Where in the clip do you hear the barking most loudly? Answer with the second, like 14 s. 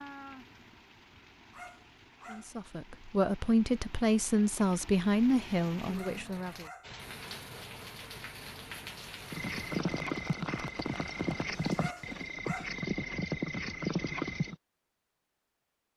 12 s.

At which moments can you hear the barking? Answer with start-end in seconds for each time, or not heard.
1.5-2.5, 5.9-7.0, 11.8-12.8.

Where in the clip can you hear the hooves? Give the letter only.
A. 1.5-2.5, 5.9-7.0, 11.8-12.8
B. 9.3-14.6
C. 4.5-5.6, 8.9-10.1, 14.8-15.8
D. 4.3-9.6
B.